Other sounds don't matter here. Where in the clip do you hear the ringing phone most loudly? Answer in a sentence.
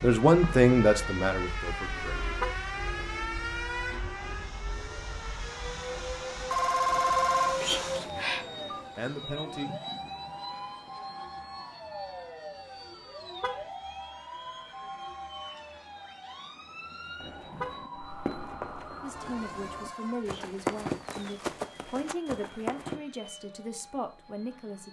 The loudest moment of the ringing phone is at 7 seconds.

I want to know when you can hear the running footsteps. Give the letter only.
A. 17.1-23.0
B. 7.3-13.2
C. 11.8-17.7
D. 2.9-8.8
A.